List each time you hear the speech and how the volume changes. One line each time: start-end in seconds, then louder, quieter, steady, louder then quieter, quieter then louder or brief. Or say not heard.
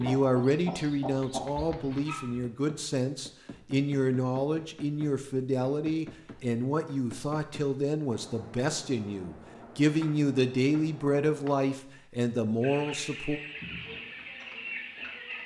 0.0-13.4 steady.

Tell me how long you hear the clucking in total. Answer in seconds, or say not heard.
5 s.